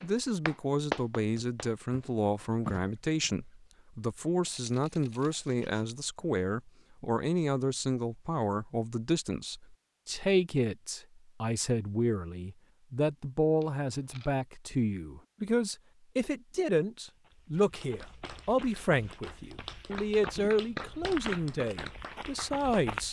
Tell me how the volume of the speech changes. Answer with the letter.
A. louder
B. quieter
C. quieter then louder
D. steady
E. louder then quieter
D.